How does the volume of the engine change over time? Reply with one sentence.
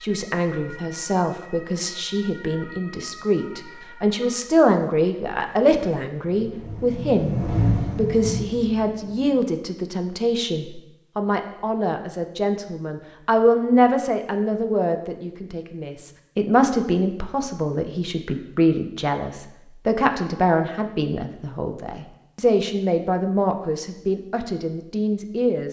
The volume of the engine goes up, then down.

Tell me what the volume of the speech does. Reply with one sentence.
The volume of the speech stays about the same.